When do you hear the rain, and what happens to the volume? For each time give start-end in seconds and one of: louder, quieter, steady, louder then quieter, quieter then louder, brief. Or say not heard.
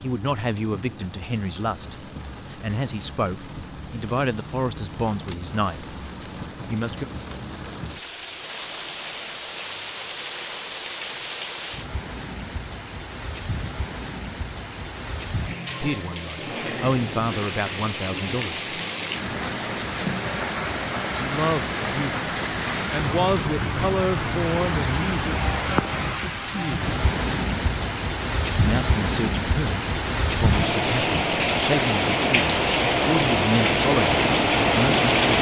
0.0-35.3 louder.